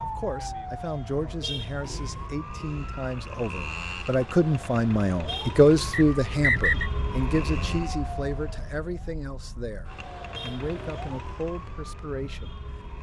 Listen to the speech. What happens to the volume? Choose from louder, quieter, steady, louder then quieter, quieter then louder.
louder then quieter.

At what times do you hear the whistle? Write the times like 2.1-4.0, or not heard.
5.9-6.9.